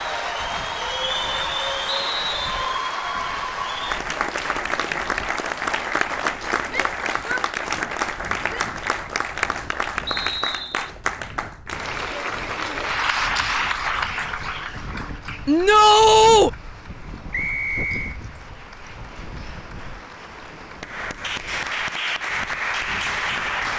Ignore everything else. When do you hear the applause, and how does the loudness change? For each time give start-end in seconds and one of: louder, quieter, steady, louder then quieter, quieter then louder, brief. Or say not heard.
0.0-23.7 quieter then louder.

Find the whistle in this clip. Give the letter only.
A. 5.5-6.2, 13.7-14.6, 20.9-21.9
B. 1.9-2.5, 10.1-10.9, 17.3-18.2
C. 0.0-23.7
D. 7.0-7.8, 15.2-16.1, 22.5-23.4
B.